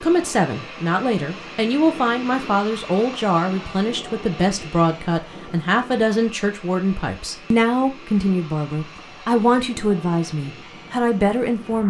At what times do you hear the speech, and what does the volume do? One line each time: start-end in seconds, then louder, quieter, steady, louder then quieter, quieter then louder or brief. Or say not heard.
0.0-11.8 steady.